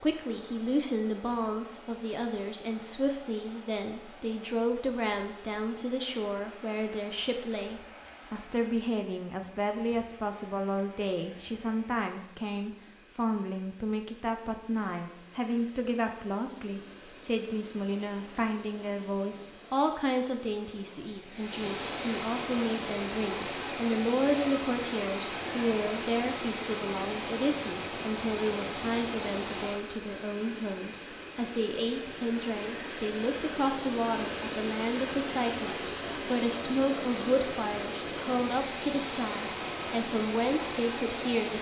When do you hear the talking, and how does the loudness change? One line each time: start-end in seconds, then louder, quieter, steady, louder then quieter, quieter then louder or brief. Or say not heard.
0.0-41.5 steady.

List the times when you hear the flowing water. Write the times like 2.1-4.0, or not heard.
0.0-41.5.